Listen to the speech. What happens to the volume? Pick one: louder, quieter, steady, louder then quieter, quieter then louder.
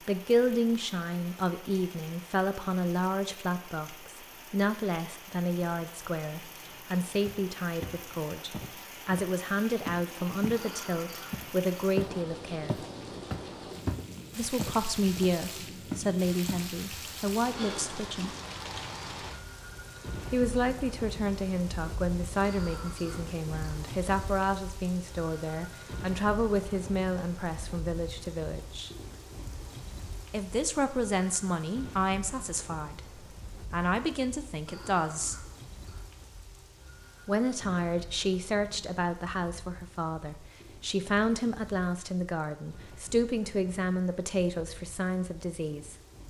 steady.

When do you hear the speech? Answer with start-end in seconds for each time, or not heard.
0.1-12.8, 14.3-18.4, 20.3-28.9, 30.3-35.4, 37.2-46.2.